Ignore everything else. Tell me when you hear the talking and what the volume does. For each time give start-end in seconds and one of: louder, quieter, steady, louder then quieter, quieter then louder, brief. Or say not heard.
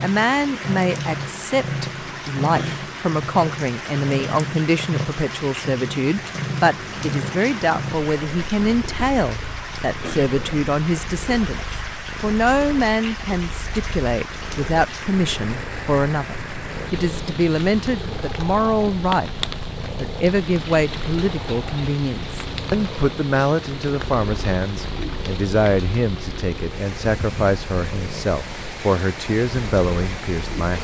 0.0-30.8 steady.